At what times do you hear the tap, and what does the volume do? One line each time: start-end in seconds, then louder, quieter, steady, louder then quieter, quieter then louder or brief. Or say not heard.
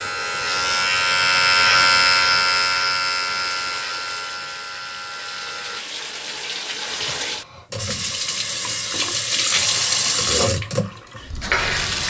0.0-12.0 louder.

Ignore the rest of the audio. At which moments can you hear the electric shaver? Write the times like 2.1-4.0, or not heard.
0.0-5.8.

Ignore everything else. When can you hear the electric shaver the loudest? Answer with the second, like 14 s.
2 s.